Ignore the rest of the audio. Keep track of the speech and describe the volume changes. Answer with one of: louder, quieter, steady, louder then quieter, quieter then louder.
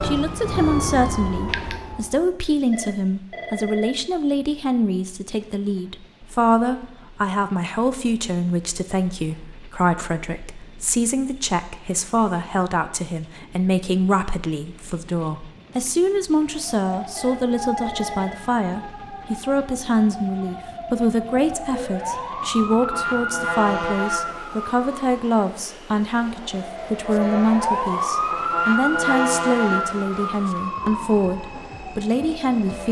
steady.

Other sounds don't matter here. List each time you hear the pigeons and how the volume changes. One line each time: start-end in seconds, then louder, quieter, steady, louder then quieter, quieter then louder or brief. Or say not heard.
not heard.